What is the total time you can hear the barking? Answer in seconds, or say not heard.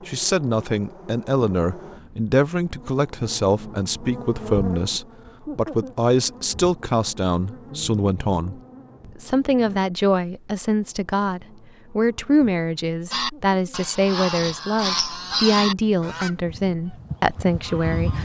not heard.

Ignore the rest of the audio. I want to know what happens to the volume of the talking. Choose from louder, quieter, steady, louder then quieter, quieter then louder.
steady.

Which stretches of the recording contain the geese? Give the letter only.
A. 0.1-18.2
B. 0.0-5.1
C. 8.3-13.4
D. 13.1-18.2
D.